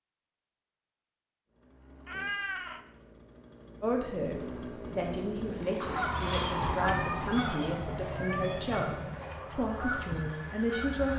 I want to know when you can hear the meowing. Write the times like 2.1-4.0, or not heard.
2.0-2.9, 6.7-9.2.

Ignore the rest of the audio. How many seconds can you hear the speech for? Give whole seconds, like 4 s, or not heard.
7 s.